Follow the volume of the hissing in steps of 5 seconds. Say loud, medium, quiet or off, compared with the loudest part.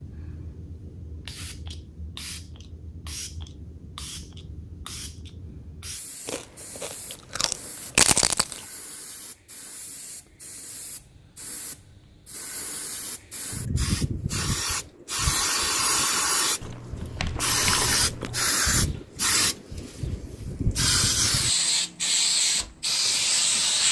quiet, quiet, medium, loud, loud.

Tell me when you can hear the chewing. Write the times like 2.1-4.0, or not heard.
6.2-8.7, 16.6-18.6.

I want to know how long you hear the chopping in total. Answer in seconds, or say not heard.
not heard.